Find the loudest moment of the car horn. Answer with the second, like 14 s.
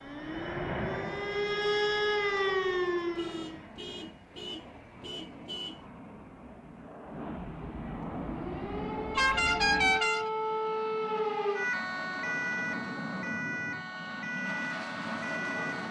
10 s.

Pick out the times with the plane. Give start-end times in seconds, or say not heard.
0.0-15.8.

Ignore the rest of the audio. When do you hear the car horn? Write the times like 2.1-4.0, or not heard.
3.1-5.8, 9.2-10.3.